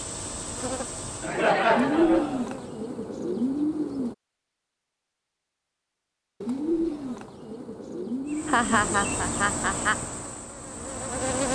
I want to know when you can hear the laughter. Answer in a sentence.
You can hear the laughter from 1.2 to 2.5 s and from 8.4 to 9.9 s.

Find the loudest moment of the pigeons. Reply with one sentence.
The loudest moment of the pigeons is at 2 seconds.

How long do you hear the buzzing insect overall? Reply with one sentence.
The buzzing insect can be heard for 6 seconds in total.